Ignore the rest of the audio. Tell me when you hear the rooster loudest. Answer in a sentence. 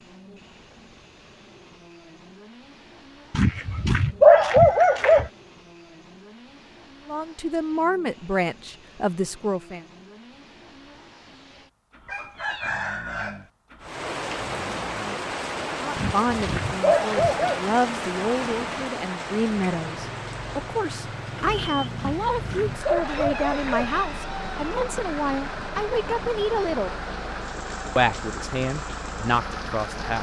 The volume of the rooster peaks at 13 seconds.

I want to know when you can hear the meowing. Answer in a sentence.
The meowing can't be heard in this clip.